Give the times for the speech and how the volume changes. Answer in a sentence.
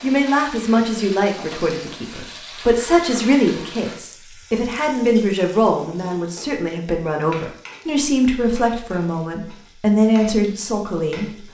You can hear the speech from 0.0 to 11.4 s, at a steady volume.